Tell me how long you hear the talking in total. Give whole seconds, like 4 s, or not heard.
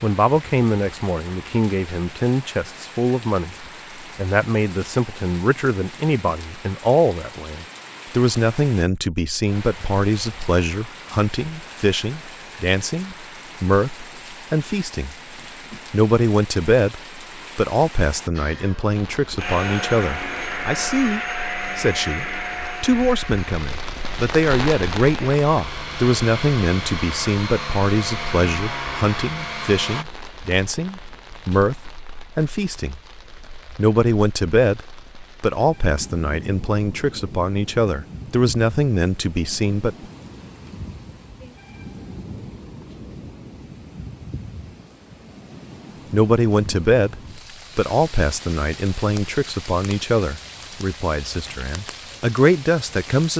46 s.